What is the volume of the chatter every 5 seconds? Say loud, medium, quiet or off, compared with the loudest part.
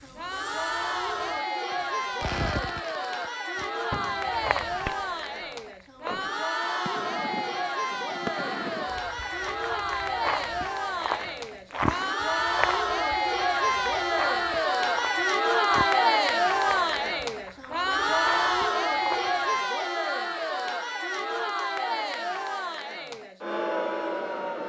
medium, medium, loud, loud, medium.